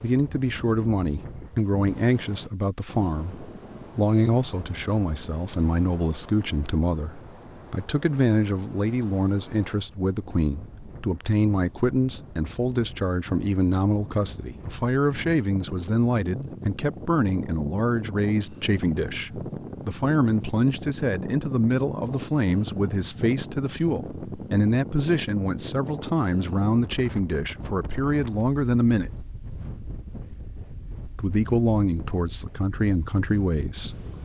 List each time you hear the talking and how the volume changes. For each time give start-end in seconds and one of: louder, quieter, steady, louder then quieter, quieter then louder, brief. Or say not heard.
0.0-29.1 steady
31.1-34.1 brief.